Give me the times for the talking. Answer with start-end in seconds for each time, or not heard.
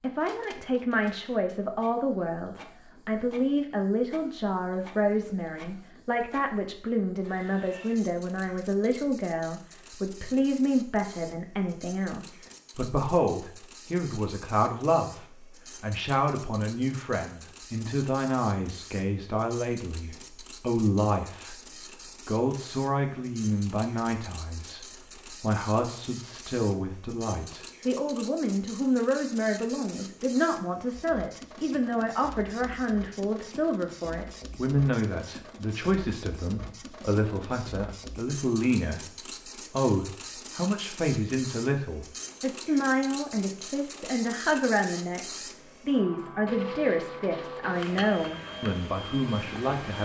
0.0-21.6, 22.2-39.0, 39.7-45.2, 45.9-50.0.